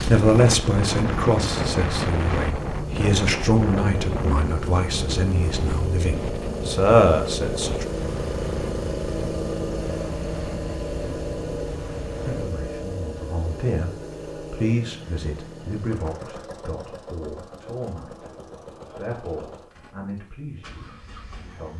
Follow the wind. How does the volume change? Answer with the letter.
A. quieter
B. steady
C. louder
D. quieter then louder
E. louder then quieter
A.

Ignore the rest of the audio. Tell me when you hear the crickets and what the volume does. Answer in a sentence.
The crickets can't be heard in this clip.